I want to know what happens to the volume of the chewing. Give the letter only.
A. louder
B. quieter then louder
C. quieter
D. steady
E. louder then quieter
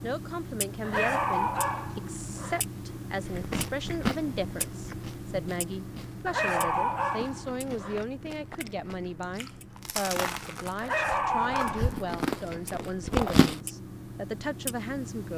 B.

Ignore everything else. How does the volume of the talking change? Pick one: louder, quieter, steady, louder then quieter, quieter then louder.
steady.